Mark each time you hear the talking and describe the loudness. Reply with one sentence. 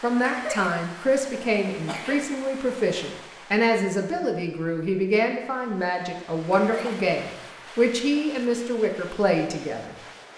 You can hear the talking from 0.0 to 9.9 s, at a steady volume.